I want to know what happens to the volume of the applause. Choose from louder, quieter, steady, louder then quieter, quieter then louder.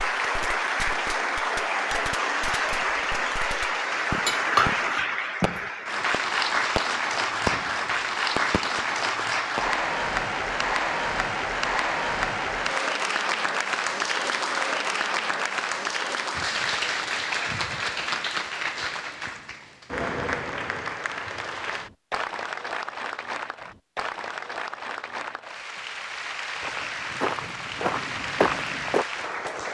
quieter.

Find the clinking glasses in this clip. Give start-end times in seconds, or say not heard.
4.2-5.6.